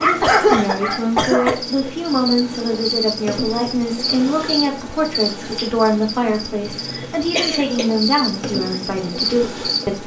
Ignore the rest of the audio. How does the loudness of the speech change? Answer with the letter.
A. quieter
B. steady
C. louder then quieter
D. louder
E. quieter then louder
B.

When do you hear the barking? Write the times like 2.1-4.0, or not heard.
0.0-1.6.